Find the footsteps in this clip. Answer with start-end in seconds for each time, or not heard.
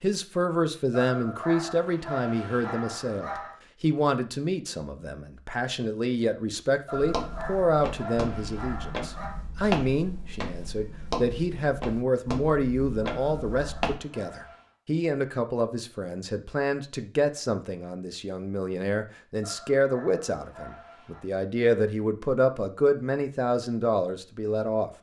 7.0-13.9.